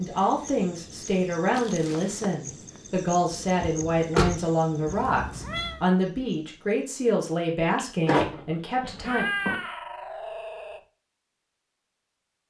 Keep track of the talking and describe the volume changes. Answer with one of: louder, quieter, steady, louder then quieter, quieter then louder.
steady.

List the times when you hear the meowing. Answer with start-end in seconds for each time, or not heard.
1.5-2.3, 4.8-5.8, 9.1-10.8.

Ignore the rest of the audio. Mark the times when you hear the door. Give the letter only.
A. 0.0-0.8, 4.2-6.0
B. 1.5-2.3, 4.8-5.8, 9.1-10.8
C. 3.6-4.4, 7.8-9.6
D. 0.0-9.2
C.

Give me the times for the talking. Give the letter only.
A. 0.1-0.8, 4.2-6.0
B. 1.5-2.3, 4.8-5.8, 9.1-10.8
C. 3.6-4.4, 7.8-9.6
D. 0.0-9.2
D.